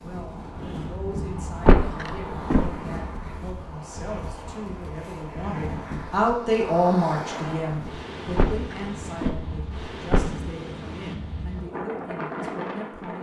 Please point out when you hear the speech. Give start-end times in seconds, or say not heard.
0.0-13.1.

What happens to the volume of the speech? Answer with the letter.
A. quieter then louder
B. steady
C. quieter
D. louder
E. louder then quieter
E.